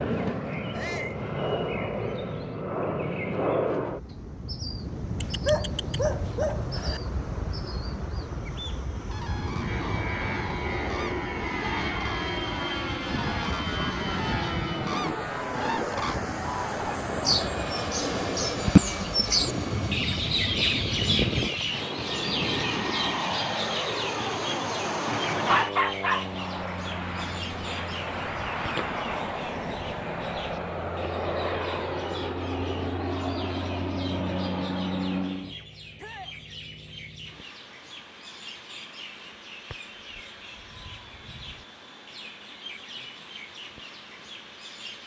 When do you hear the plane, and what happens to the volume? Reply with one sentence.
You can hear the plane from 0.0 to 45.0 s, getting quieter.